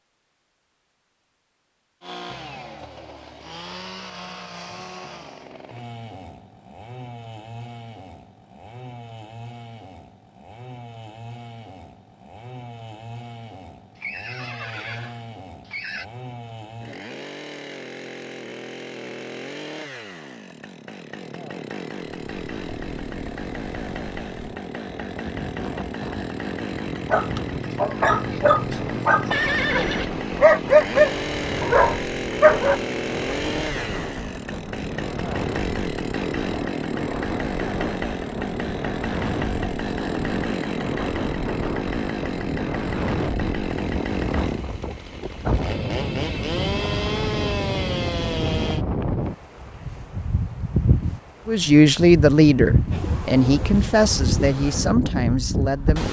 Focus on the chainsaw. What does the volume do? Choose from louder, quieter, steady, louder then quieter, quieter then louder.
louder.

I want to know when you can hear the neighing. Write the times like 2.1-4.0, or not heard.
13.9-16.1, 29.3-30.1.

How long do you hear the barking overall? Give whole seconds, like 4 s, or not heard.
6 s.